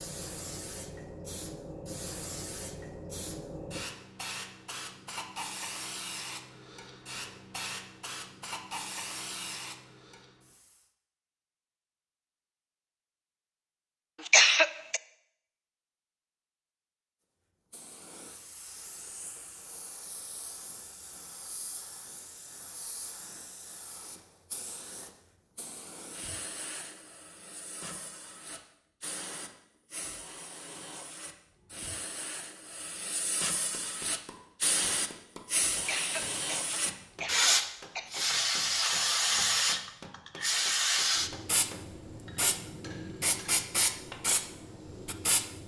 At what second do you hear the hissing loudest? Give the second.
39 s.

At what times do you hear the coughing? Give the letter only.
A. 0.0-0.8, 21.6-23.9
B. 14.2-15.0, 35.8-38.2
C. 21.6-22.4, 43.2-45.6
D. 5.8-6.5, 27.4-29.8
B.